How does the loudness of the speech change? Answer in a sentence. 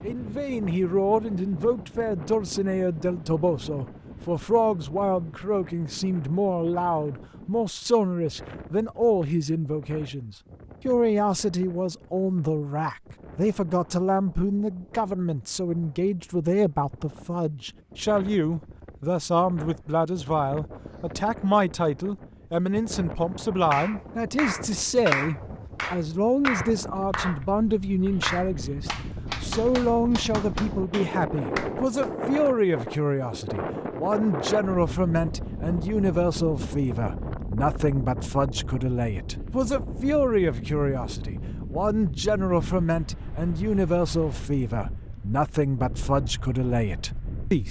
The loudness of the speech stays about the same.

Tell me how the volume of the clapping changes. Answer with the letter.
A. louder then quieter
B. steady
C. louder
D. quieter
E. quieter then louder
D.